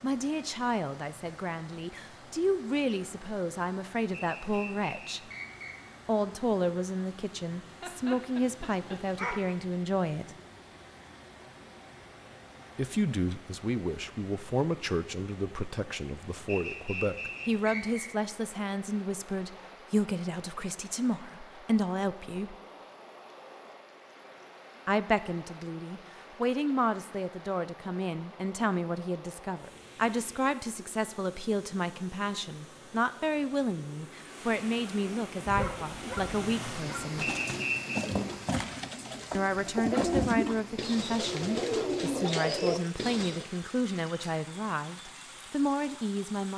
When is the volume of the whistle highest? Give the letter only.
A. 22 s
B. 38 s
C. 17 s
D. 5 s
B.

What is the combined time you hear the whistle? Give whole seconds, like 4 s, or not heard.
4 s.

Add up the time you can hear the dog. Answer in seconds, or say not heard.
3 s.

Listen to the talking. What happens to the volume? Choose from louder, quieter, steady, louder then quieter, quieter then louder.
steady.